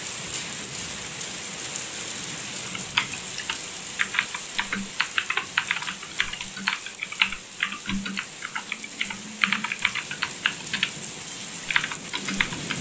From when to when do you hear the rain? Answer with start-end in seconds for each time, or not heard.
0.0-12.7.